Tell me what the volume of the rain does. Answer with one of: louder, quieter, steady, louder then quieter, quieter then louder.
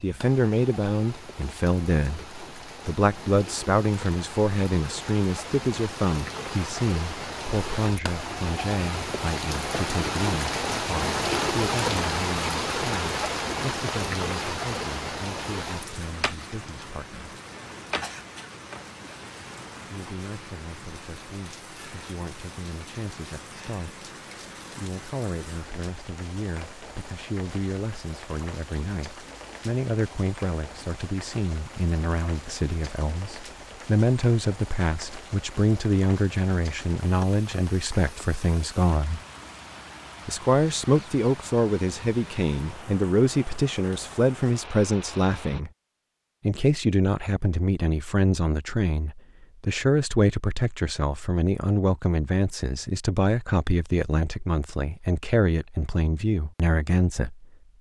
louder then quieter.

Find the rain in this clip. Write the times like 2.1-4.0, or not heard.
0.0-45.6.